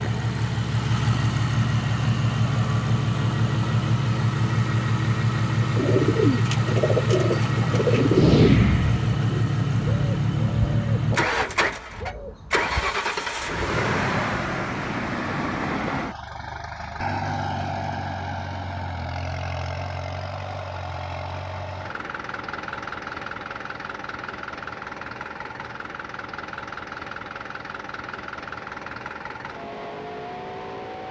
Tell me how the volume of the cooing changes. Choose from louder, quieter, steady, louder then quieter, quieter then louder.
quieter.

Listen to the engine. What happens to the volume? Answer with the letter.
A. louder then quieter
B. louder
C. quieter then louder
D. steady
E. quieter
E.